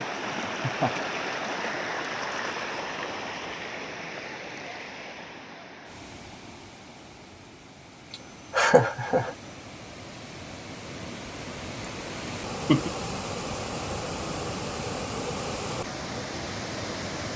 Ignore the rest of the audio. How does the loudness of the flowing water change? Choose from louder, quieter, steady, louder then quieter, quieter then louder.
quieter then louder.